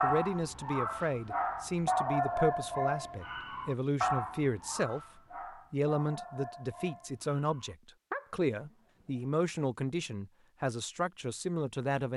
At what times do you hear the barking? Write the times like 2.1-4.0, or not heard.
0.0-9.3.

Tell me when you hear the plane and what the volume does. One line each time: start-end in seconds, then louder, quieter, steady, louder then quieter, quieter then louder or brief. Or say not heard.
not heard.